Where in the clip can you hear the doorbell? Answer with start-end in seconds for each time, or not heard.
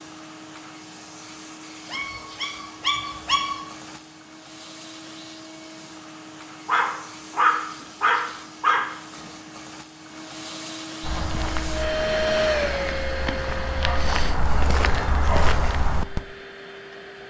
not heard.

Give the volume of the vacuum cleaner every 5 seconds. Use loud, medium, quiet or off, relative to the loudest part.
quiet, quiet, loud, quiet.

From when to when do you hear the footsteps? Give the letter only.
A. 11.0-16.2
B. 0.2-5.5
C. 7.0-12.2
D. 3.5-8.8
A.